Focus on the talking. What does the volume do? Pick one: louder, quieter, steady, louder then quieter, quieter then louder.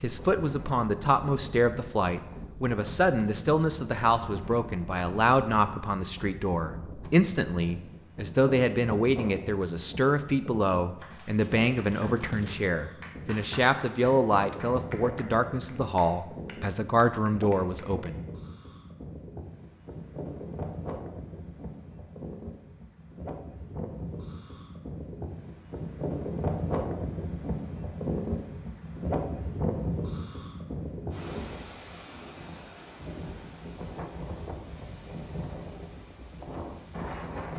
steady.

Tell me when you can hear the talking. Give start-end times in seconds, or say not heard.
0.0-18.1.